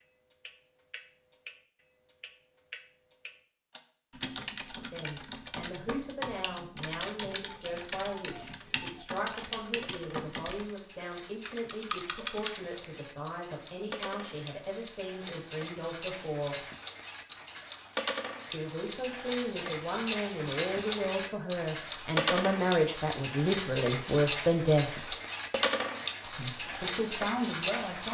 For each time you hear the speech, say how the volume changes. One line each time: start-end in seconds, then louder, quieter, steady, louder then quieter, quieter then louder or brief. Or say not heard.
4.9-16.6 steady
18.5-25.1 louder
26.2-28.0 brief.